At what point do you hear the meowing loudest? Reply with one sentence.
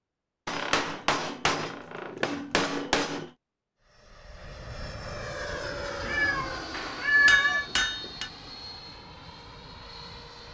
The volume of the meowing peaks at 7 seconds.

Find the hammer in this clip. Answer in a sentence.
You can hear the hammer from 0.5 to 3.3 s and from 6.7 to 8.3 s.